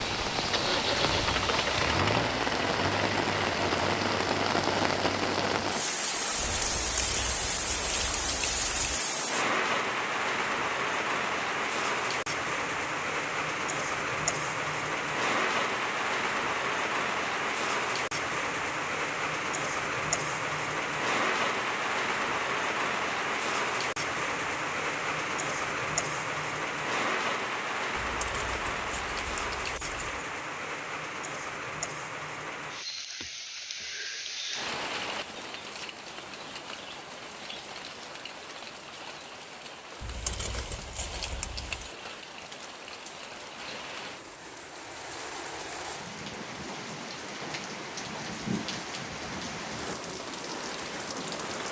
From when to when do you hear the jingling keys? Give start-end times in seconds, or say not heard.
6.7-9.1, 28.0-30.0, 40.0-41.9.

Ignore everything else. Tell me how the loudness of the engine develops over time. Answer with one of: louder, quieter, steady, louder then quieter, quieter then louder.
quieter.